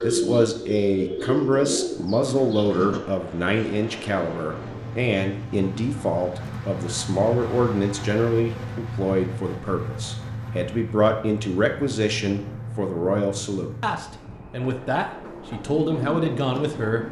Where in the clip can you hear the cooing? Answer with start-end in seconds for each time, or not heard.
0.0-3.0, 15.5-17.0.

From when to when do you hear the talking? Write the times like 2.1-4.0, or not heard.
0.0-17.0.